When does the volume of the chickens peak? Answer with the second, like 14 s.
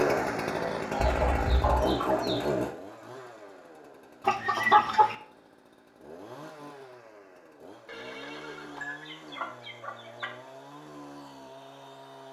5 s.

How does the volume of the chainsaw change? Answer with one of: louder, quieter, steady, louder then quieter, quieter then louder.
quieter.